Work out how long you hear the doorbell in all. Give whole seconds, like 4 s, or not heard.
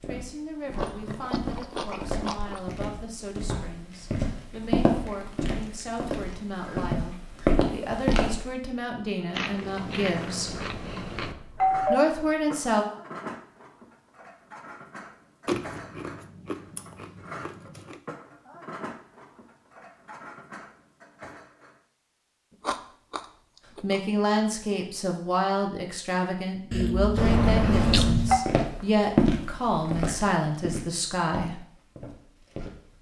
3 s.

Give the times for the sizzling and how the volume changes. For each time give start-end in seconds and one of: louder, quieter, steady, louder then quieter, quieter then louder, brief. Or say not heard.
not heard.